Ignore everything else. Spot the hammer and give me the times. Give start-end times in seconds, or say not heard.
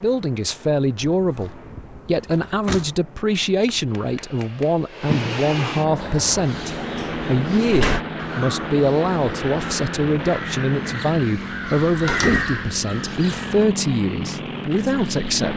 3.6-5.4.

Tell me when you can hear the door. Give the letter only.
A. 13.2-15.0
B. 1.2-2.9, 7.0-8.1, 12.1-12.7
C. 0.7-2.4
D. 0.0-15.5
B.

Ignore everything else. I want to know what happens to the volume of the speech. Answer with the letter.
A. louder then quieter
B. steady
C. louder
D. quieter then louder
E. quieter
B.